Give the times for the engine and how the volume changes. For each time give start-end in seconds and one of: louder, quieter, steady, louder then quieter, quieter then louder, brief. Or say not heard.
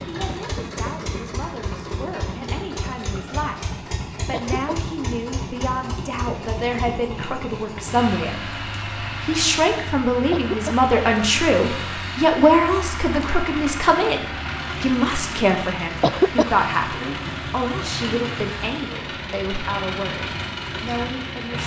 0.0-21.6 steady.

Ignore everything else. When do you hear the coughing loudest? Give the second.
16 s.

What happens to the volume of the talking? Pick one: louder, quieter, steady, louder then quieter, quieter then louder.
louder then quieter.